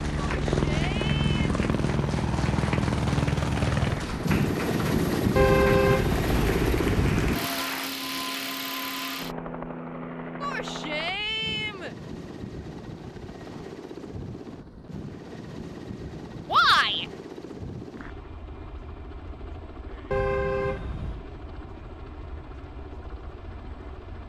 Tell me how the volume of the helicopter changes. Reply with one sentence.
The loudness of the helicopter goes down.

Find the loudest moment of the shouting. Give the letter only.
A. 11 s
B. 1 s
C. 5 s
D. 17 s
D.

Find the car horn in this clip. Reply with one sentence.
The car horn can be heard from 5.3 to 7.3 s and from 20.1 to 21.2 s.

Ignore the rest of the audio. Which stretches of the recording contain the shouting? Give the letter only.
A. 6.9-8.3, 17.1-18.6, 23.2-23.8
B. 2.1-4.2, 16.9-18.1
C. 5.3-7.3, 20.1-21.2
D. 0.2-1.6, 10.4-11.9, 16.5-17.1
D.